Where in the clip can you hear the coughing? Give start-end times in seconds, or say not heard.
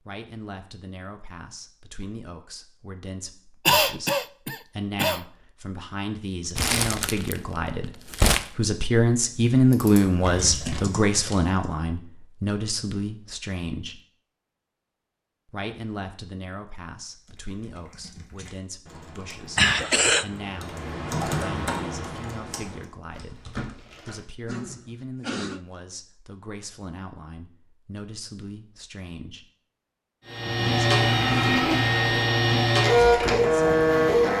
3.6-5.2, 19.6-20.2, 24.4-25.6.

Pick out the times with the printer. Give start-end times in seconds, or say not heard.
30.2-34.3.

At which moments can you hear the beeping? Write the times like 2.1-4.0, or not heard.
not heard.